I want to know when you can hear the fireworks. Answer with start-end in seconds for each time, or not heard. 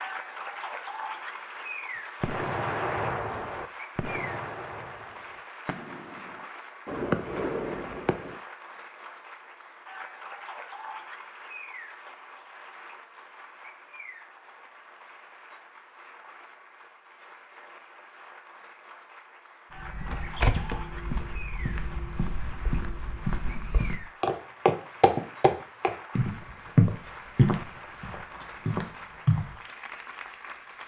2.2-8.4.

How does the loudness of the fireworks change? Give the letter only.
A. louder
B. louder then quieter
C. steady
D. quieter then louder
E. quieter
D.